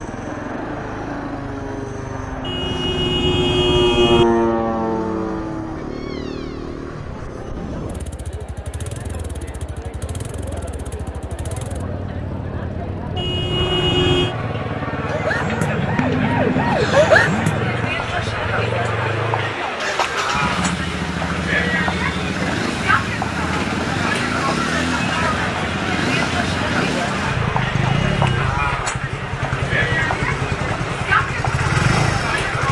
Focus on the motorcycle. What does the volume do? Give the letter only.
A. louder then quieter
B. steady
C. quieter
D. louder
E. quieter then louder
D.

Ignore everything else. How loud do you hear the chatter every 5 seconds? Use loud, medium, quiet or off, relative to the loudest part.
medium, quiet, medium, loud, loud, loud, loud.